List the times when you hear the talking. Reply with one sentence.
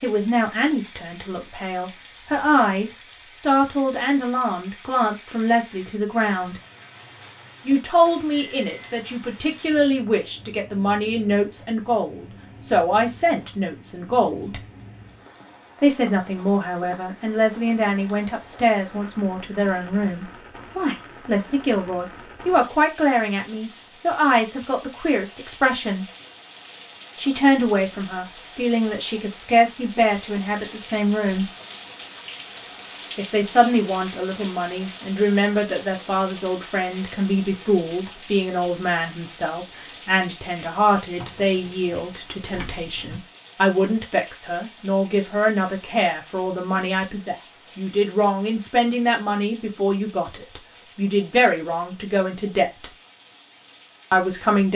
You can hear the talking from 0.0 to 6.6 s, from 7.7 to 14.6 s, from 15.8 to 26.1 s, from 27.1 to 31.5 s, from 33.1 to 52.9 s and from 54.1 to 54.7 s.